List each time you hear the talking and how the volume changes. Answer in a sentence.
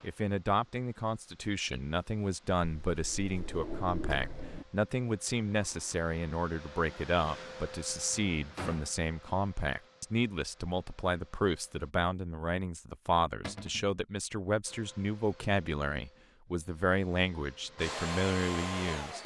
The talking can be heard from 0.0 to 19.2 s, at a steady volume.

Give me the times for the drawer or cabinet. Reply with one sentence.
You can hear the drawer or cabinet from 2.9 to 4.7 s, from 8.3 to 8.9 s and from 13.4 to 13.9 s.